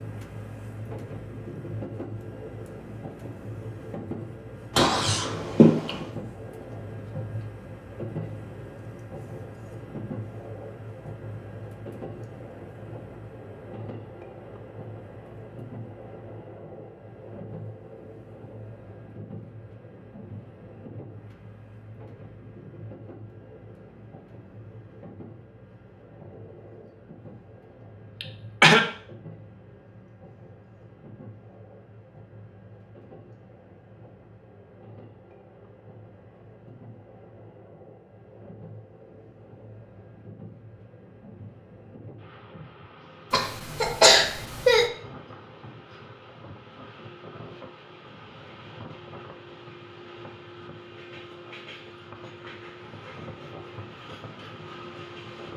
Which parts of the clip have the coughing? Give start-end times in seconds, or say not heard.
4.8-6.0, 28.2-28.9, 43.3-44.9.